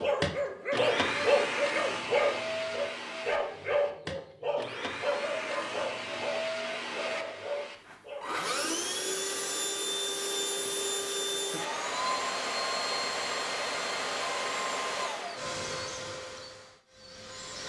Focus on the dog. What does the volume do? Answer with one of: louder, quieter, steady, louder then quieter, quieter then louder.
quieter.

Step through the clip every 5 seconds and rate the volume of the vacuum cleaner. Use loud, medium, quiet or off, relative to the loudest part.
loud, loud, loud, medium.